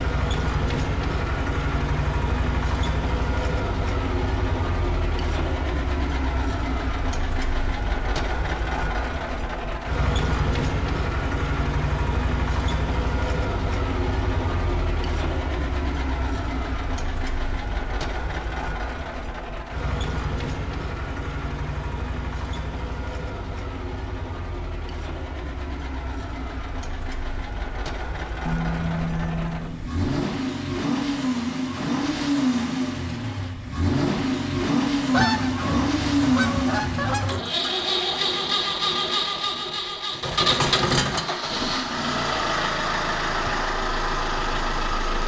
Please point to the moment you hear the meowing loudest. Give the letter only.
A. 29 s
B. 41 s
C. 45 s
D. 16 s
A.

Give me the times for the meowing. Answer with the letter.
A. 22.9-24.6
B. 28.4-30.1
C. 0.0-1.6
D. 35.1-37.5
B.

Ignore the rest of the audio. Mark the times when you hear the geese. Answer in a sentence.
You can hear the geese from 35.1 to 37.5 s.